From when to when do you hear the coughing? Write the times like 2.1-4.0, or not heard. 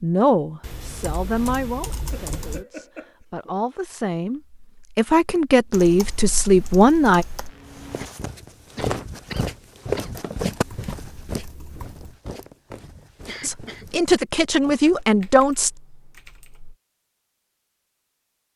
2.1-3.6, 7.7-10.2, 13.2-13.8.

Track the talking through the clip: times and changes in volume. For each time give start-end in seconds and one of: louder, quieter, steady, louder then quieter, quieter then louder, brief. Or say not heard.
0.0-7.2 quieter then louder
13.4-15.7 brief.